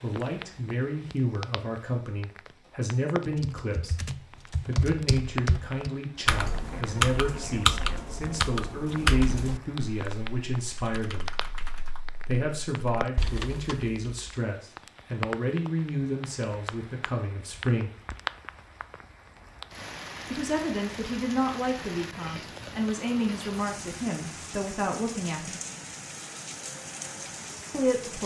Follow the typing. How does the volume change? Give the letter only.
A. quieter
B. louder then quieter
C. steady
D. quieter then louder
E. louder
A.